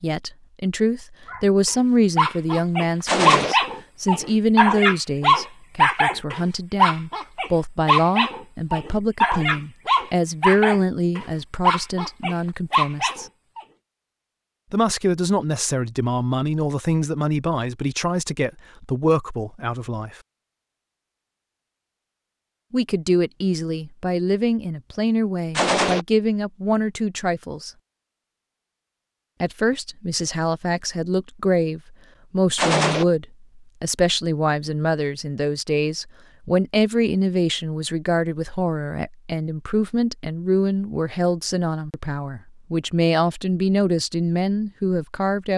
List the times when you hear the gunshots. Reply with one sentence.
You can hear the gunshots from 3.0 to 3.5 s, from 25.6 to 26.1 s and from 32.5 to 33.0 s.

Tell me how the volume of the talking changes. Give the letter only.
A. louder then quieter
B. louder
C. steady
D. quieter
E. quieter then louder
C.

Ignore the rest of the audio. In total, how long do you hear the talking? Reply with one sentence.
The talking can be heard for 40 seconds in total.